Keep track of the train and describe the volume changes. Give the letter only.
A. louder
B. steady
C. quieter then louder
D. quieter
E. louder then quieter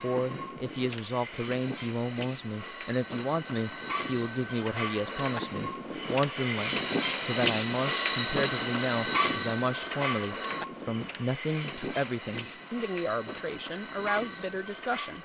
E.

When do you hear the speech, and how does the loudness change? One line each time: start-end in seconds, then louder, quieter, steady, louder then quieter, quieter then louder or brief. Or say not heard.
0.0-15.1 steady.